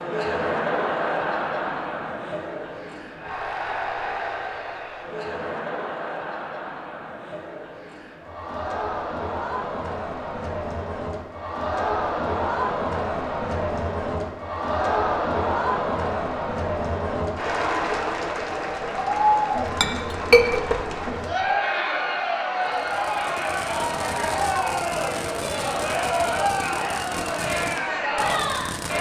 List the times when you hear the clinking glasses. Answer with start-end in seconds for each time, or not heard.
19.6-21.1.